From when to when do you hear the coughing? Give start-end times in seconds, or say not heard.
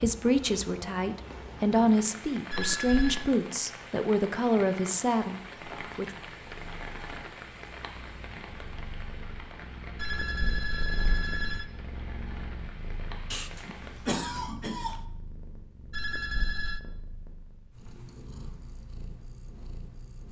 13.3-15.1.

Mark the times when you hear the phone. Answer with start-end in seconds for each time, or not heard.
2.5-3.3, 9.9-11.7, 15.9-16.8.